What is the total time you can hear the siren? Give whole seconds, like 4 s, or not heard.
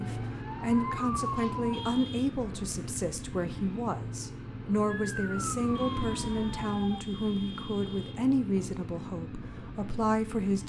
4 s.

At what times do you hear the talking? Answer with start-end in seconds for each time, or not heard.
0.0-10.6.